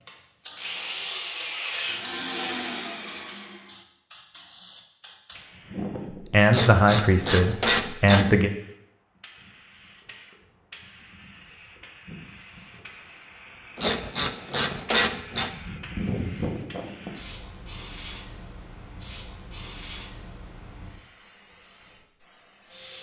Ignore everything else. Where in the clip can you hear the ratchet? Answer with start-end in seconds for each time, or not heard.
6.5-8.4, 13.8-15.5.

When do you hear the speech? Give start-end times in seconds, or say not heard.
6.3-8.5.